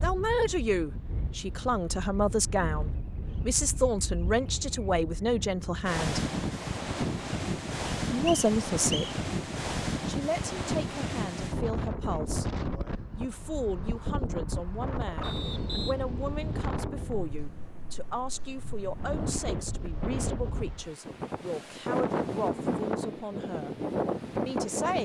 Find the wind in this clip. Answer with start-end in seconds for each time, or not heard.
0.0-25.0.